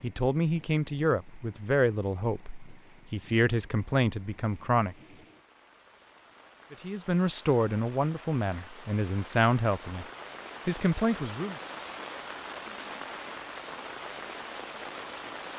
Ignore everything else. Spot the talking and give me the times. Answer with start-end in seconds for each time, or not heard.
0.0-5.0, 6.7-10.1, 10.7-11.6.